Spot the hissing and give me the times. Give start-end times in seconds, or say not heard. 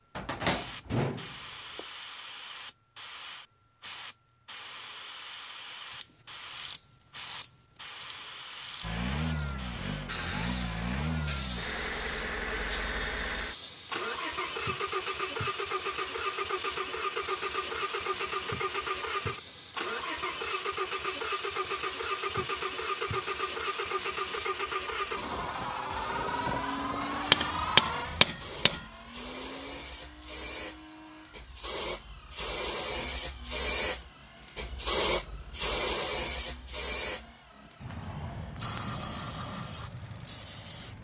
0.0-40.9.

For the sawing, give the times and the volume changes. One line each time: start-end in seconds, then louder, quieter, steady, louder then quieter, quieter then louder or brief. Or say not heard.
not heard.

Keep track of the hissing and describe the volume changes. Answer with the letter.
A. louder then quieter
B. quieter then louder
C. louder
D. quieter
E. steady
C.